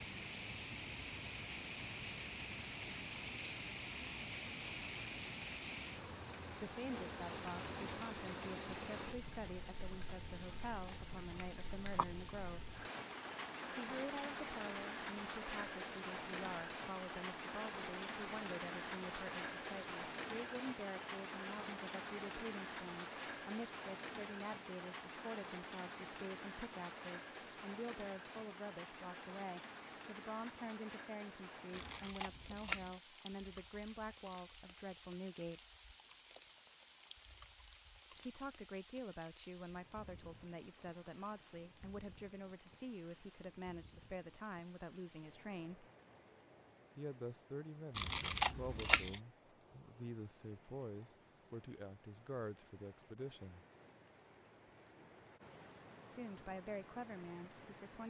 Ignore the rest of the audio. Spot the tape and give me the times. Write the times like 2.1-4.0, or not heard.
not heard.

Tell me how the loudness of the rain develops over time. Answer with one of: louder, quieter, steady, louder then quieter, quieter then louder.
quieter.